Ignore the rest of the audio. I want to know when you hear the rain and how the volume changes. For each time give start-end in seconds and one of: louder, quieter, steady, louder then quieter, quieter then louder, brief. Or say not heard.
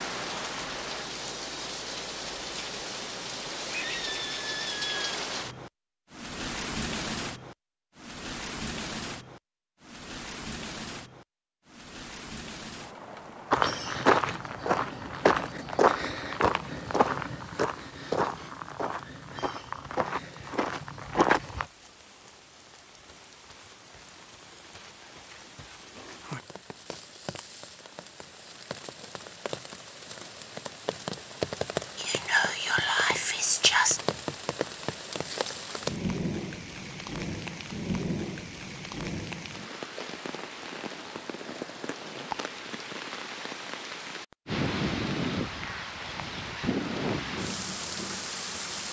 0.0-48.8 quieter then louder.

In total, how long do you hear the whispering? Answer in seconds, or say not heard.
2 s.